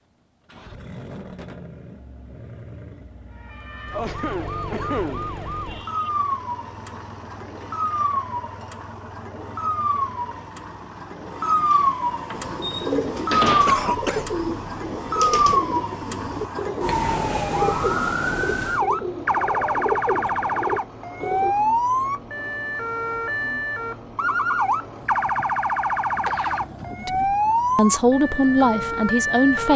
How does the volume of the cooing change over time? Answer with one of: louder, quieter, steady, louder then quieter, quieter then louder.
steady.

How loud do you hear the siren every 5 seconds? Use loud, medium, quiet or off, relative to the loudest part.
medium, medium, loud, loud, loud, loud.